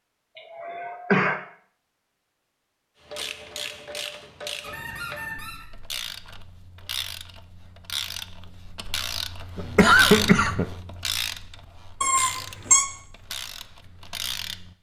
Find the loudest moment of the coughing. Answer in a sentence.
The loudest moment of the coughing is at 10 seconds.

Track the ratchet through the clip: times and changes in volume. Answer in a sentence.
The ratchet can be heard from 3.0 to 14.7 s, getting louder then quieter.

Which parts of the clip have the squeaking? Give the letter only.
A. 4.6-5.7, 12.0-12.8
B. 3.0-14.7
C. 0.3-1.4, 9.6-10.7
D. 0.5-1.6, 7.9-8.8
A.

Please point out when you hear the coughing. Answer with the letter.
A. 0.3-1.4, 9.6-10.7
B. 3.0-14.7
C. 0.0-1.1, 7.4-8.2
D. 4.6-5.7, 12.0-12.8
A.